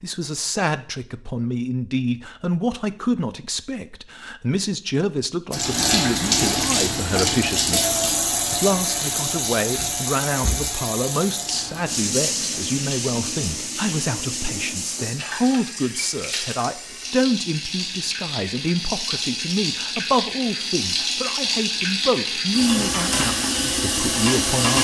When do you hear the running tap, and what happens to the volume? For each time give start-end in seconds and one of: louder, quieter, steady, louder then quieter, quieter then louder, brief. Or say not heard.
5.5-24.8 quieter then louder.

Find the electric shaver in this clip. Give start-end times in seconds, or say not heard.
not heard.